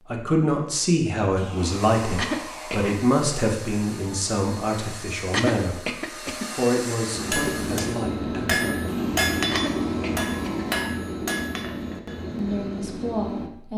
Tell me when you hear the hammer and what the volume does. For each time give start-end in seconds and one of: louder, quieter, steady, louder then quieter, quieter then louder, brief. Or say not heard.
7.1-13.5 quieter.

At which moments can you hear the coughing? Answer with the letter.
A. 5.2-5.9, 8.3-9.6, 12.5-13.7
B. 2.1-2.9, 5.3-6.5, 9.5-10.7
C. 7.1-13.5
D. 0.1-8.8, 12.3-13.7
B.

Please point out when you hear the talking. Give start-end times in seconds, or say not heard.
0.1-8.8, 12.3-13.7.